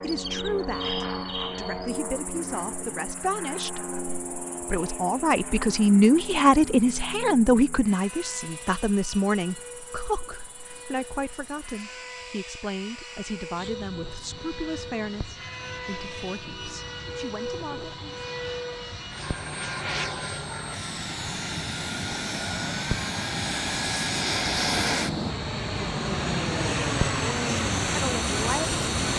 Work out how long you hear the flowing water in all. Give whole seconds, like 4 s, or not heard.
not heard.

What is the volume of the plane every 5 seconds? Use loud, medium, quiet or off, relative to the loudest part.
medium, quiet, quiet, medium, loud, loud.